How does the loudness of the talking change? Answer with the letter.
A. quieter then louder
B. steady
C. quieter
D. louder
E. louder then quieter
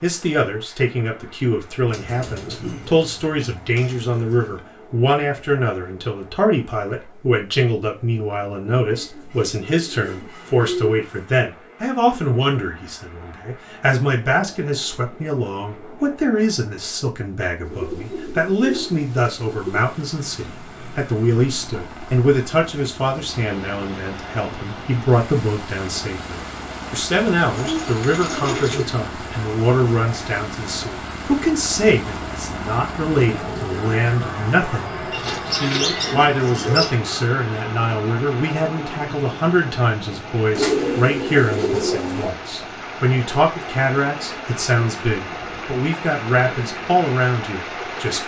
B.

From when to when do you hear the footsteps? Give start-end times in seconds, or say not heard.
not heard.